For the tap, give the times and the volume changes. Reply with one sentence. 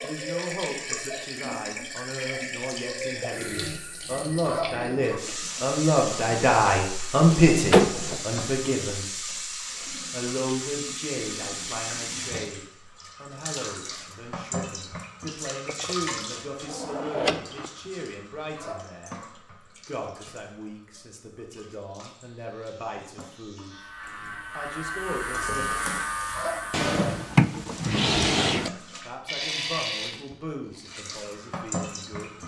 The tap can be heard from 0.0 to 32.4 s, getting quieter then louder.